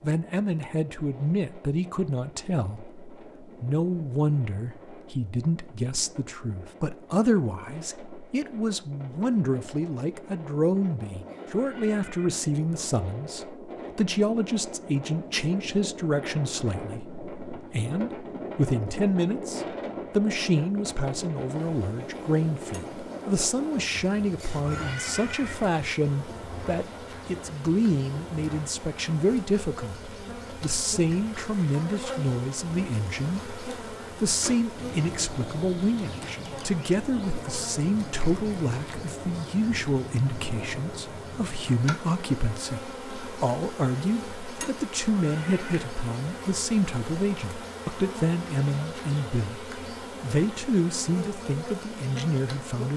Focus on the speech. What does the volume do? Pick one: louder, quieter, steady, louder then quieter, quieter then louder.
steady.